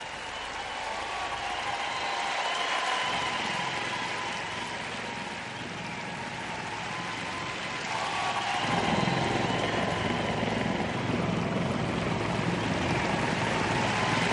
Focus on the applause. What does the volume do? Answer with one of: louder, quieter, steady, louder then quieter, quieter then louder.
steady.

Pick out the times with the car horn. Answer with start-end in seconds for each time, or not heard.
not heard.